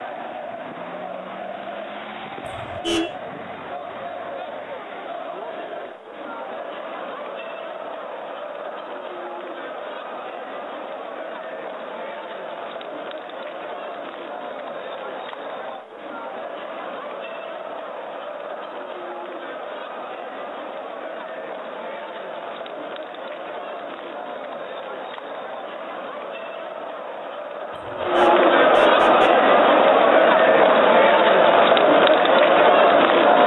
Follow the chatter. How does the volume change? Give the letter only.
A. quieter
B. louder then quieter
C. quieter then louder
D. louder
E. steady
D.